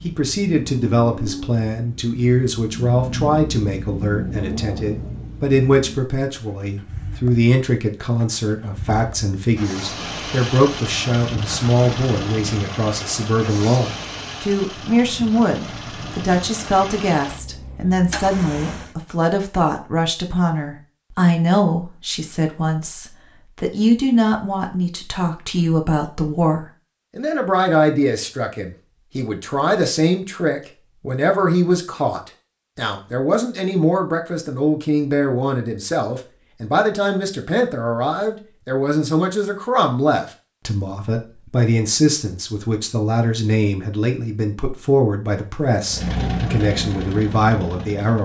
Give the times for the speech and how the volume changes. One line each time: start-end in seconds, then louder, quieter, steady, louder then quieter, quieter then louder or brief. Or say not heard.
0.0-48.2 steady.